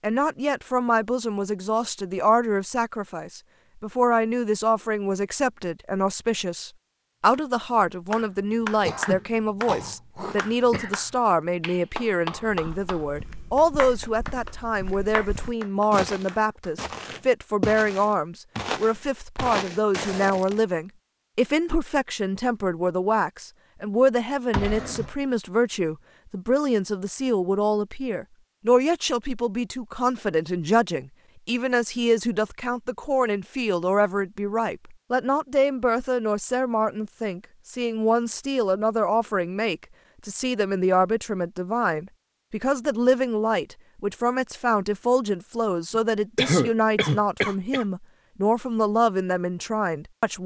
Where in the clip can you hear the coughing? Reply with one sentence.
You can hear the coughing from 8.8 to 10.9 s, from 24.5 to 25.1 s and from 45.9 to 47.9 s.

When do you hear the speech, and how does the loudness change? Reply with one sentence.
You can hear the speech from 0.0 to 50.4 s, at a steady volume.